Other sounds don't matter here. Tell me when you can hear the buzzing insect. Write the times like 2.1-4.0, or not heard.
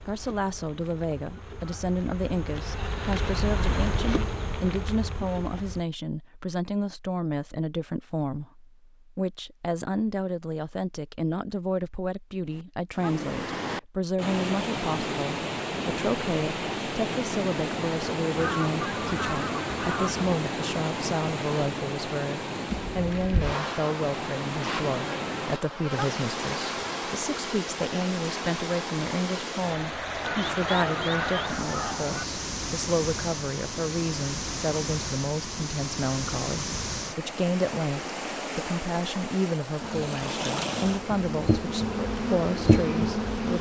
0.0-5.8, 22.6-27.2, 39.8-43.5.